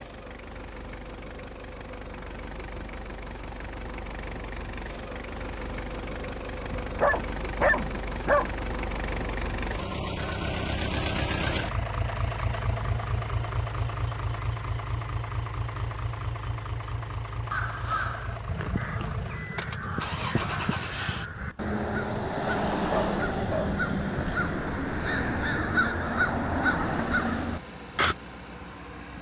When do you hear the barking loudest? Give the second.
8 s.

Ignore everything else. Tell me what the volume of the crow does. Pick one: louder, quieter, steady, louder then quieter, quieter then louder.
louder.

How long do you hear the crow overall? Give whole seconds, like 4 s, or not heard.
11 s.